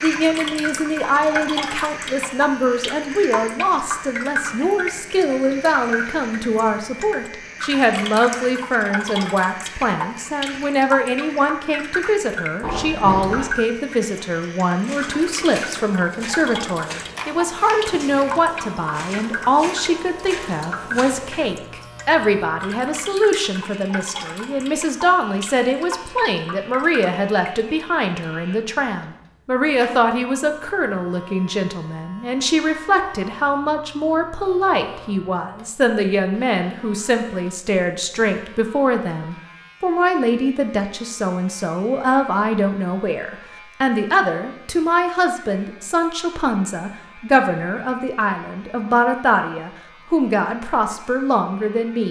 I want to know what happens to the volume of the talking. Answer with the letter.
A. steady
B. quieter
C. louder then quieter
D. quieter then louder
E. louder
A.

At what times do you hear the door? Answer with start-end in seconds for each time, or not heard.
12.6-13.5.